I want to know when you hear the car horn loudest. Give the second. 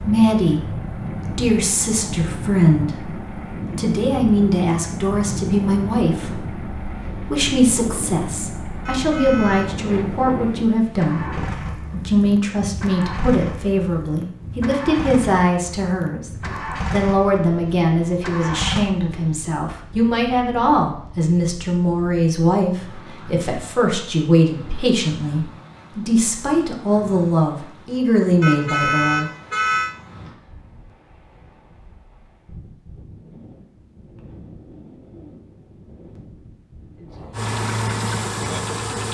29 s.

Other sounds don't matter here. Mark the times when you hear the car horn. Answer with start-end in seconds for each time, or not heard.
8.8-9.8, 28.4-29.9.